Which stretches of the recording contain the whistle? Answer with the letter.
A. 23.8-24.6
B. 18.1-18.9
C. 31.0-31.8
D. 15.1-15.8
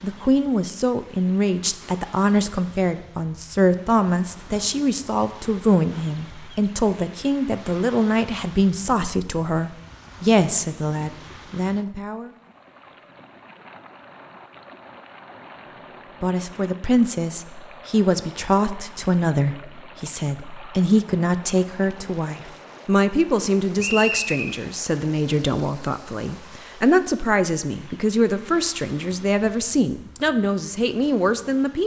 A.